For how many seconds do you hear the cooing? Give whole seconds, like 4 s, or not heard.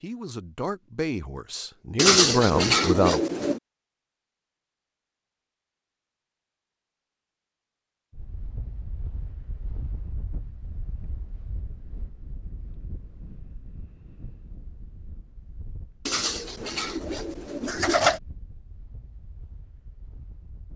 4 s.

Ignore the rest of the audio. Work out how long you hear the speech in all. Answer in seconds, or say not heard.
3 s.